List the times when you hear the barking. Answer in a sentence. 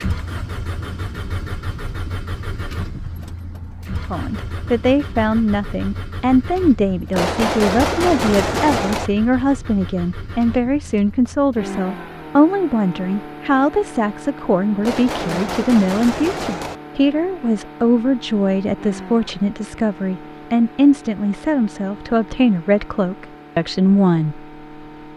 You can't hear the barking here.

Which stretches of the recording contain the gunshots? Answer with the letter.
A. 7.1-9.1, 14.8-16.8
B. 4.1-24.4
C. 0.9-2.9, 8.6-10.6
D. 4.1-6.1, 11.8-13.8
A.